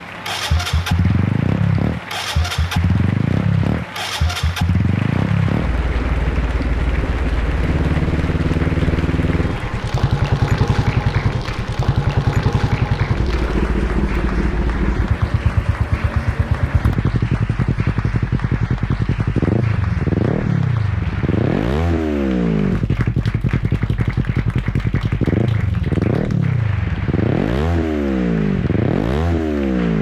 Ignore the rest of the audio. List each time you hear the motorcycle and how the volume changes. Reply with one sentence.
The motorcycle can be heard from 0.0 to 29.9 s, at a steady volume.